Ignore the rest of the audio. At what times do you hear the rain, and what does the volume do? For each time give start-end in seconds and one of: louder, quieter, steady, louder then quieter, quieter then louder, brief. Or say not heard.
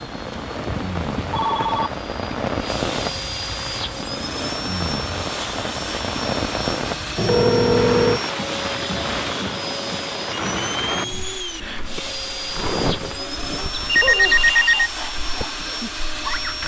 0.0-16.6 quieter.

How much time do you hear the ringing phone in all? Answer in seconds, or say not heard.
4 s.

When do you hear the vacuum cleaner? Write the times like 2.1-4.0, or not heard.
0.0-16.6.